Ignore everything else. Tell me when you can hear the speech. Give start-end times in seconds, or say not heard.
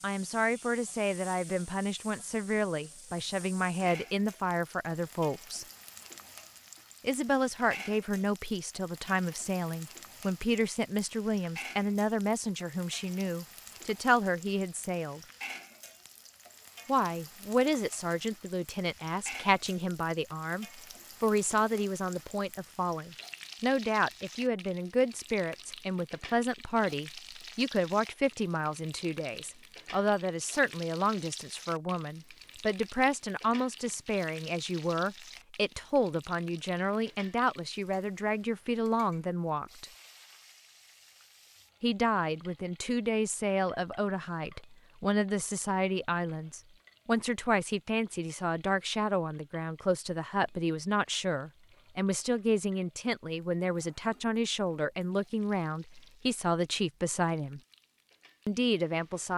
0.0-5.7, 7.0-15.2, 16.9-39.9, 41.8-57.6, 58.5-59.3.